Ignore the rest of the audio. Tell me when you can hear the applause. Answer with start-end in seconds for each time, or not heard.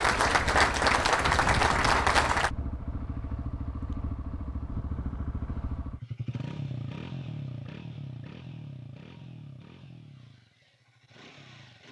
0.0-2.5.